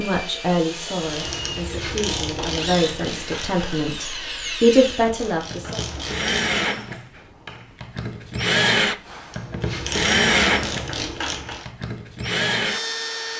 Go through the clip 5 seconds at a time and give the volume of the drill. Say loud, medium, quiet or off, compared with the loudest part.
medium, loud, loud.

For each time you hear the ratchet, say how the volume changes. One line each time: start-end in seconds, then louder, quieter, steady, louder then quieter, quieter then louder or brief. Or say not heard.
0.9-6.6 quieter then louder
9.3-11.7 brief.